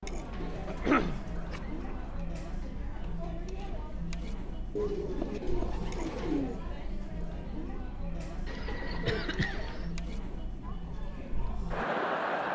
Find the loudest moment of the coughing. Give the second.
1 s.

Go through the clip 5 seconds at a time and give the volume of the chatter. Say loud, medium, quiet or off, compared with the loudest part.
medium, medium, loud.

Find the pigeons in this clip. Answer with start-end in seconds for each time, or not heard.
0.5-2.3, 4.8-6.6, 8.4-9.9.